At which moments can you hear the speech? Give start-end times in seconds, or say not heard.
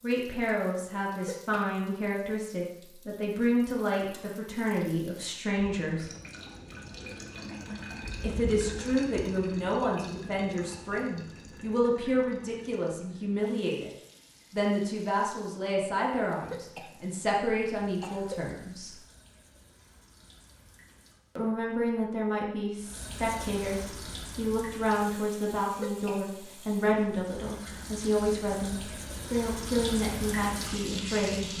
0.0-6.1, 8.2-13.9, 14.5-18.9, 21.4-31.5.